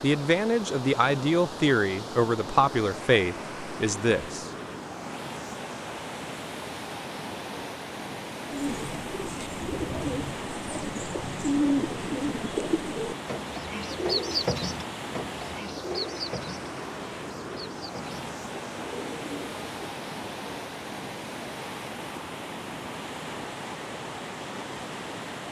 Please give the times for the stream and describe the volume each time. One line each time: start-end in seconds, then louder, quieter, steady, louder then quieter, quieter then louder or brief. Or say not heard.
0.0-25.4 steady.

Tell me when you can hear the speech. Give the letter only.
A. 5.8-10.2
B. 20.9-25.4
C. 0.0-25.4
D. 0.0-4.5
D.